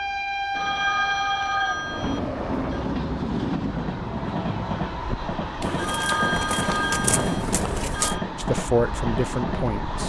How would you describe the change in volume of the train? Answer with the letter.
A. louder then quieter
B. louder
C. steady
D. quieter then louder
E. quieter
C.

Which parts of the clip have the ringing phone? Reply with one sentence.
You can hear the ringing phone from 0.6 to 2.9 s and from 5.8 to 8.2 s.